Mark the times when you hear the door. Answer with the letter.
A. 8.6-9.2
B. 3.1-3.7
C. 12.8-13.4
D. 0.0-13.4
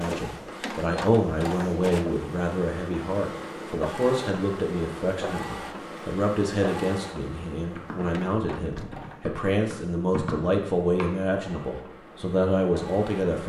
A.